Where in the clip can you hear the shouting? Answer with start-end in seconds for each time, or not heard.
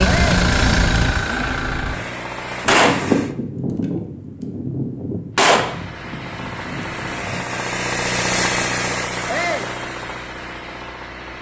0.0-0.4, 9.2-9.8.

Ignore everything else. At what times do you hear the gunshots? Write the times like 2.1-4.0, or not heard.
2.6-7.4.